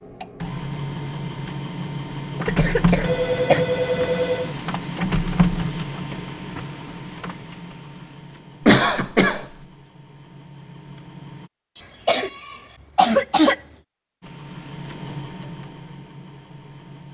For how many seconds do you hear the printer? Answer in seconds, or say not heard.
14 s.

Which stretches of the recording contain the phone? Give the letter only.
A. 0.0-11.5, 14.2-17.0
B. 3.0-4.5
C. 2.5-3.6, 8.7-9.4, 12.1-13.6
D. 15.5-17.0
B.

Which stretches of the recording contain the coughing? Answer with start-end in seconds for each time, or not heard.
2.5-3.6, 8.7-9.4, 12.1-13.6.